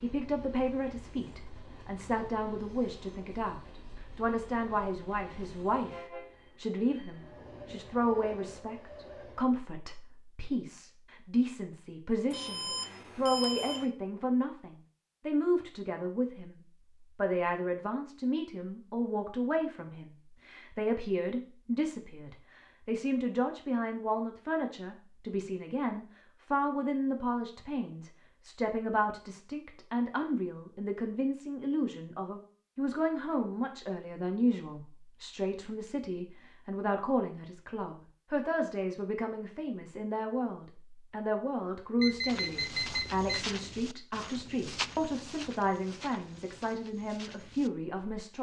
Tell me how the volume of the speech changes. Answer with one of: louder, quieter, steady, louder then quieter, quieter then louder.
steady.